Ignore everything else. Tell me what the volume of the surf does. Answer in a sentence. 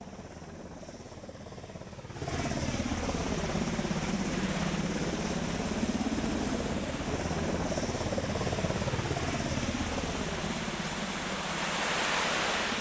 The loudness of the surf goes up.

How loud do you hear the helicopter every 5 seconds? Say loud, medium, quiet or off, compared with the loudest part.
loud, loud, medium.